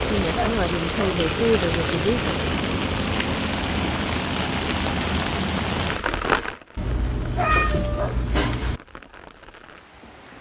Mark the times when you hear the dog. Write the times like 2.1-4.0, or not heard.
0.3-1.1, 7.3-8.2.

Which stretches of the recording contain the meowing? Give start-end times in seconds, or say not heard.
6.8-8.8.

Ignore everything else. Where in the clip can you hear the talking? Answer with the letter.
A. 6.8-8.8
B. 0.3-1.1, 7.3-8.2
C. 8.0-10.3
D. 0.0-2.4
D.